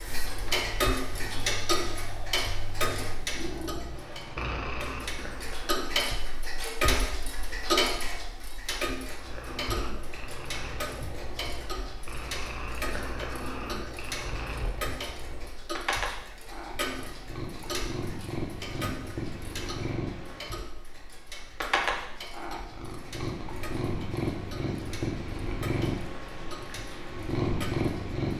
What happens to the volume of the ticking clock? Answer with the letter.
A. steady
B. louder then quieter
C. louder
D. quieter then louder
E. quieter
E.